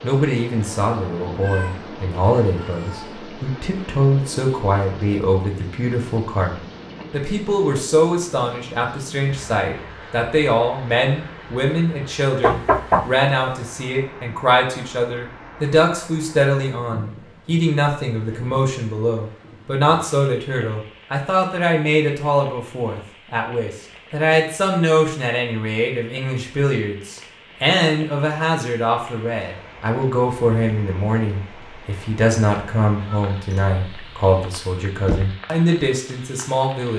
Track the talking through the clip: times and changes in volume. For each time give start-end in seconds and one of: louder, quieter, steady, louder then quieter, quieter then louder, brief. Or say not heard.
0.0-36.9 steady.